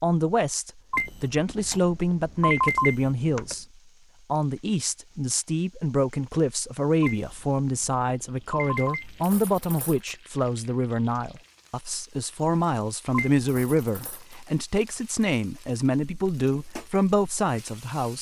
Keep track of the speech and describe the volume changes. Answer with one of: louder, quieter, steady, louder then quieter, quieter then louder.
steady.